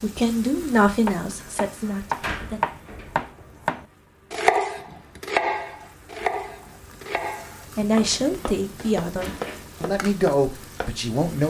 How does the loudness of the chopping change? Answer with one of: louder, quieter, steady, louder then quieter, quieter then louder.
quieter.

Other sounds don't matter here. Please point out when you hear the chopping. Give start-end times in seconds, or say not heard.
1.1-10.9.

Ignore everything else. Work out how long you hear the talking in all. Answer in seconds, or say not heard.
6 s.